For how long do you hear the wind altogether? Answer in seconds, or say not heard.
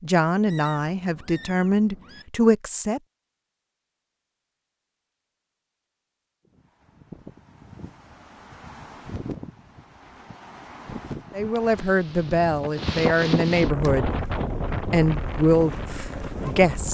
10 s.